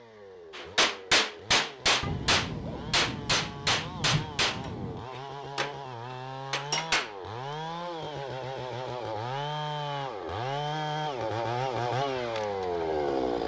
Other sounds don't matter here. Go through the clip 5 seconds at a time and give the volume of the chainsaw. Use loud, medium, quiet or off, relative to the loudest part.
quiet, medium, loud.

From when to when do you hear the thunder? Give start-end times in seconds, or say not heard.
2.0-5.0.